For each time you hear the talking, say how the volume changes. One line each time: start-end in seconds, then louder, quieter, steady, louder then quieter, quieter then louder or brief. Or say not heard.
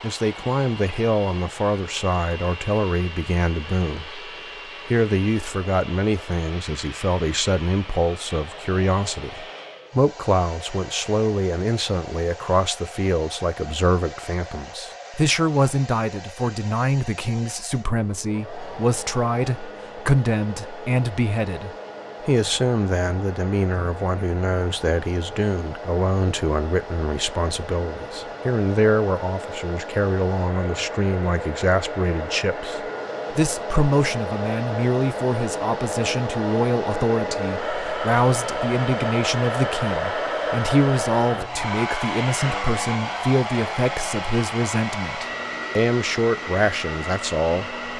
0.0-47.8 steady.